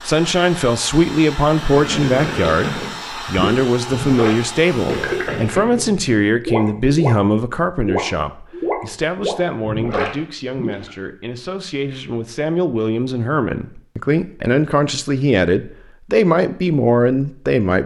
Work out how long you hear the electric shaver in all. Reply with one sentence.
You can't hear the electric shaver here.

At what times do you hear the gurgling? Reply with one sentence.
You can hear the gurgling from 1.5 to 10.9 s.